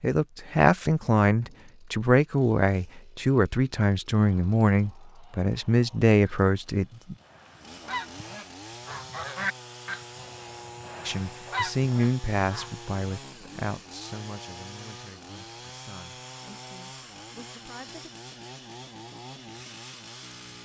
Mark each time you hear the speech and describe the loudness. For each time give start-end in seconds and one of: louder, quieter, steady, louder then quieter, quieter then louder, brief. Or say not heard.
0.0-7.2 steady
11.1-18.1 quieter.